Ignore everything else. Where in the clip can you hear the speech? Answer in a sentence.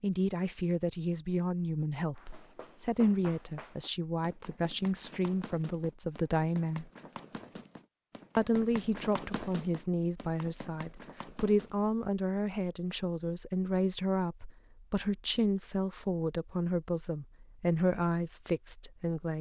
You can hear the speech from 0.0 to 6.9 s and from 8.3 to 19.3 s.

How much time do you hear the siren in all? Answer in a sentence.
The siren can't be heard in this clip.